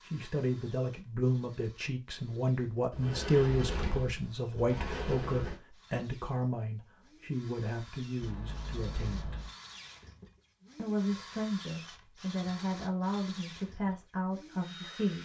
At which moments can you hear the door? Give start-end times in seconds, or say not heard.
2.9-5.5, 8.2-9.6.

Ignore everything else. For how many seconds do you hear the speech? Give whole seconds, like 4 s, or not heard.
14 s.